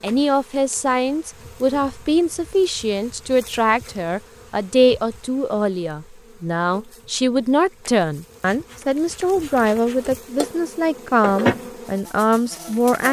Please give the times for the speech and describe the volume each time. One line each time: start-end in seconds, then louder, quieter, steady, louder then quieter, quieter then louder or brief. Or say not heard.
0.0-13.0 steady.